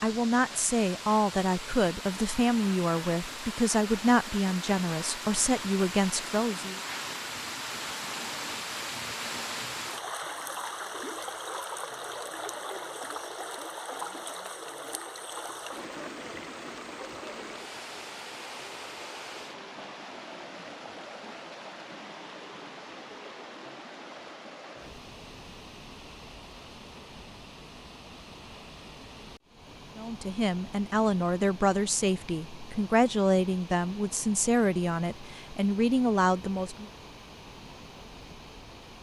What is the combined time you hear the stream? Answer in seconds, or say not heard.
39 s.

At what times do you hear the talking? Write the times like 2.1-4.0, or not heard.
0.0-6.8, 29.9-36.9.